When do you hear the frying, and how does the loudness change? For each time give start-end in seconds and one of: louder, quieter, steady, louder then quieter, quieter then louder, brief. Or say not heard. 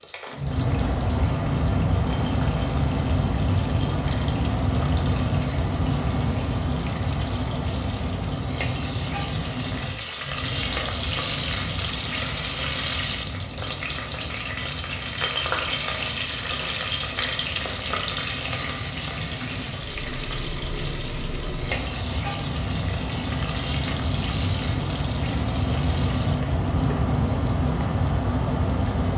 0.0-29.1 louder then quieter.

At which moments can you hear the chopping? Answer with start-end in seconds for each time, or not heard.
not heard.